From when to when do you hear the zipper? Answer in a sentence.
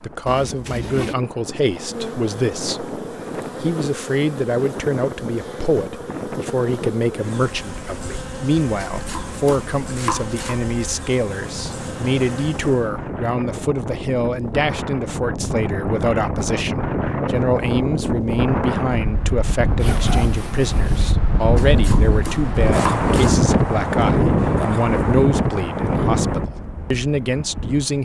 The zipper can be heard from 0.2 to 1.1 s and from 19.8 to 21.1 s.